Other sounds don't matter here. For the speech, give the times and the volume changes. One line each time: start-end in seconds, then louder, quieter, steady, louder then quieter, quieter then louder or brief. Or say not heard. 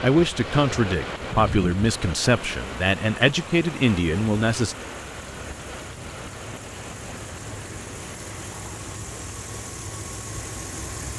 0.0-4.8 steady.